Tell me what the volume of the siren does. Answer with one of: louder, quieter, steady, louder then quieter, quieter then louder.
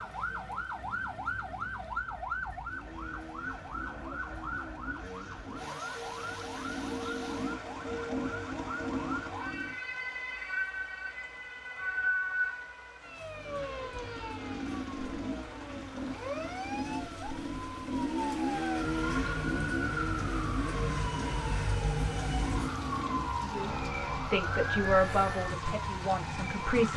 steady.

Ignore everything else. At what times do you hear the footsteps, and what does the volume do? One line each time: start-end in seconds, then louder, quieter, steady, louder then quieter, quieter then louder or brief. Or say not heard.
not heard.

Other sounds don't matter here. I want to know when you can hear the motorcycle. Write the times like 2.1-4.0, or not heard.
2.6-9.8, 13.3-26.9.